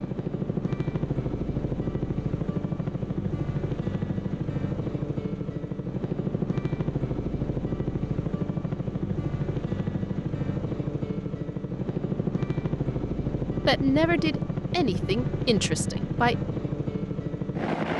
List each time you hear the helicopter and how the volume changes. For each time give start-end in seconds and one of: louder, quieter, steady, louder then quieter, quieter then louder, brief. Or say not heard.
0.0-17.9 steady.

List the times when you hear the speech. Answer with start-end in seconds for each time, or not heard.
13.5-16.4.